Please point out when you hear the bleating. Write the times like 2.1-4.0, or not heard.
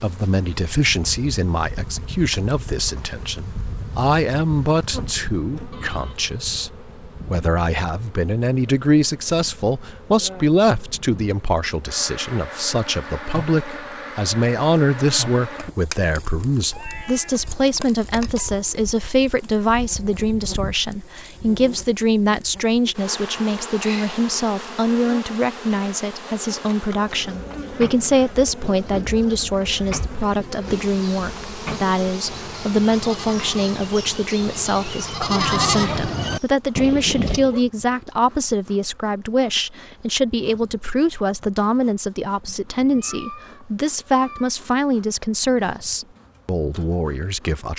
27.1-37.6.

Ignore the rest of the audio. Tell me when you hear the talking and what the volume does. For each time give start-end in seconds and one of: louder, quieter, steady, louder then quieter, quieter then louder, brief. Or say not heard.
0.0-47.7 steady.